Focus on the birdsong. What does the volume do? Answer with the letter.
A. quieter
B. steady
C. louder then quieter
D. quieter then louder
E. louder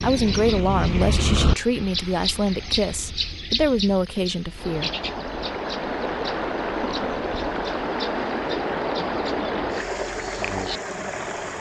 A.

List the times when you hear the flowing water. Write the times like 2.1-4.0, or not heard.
4.5-11.5.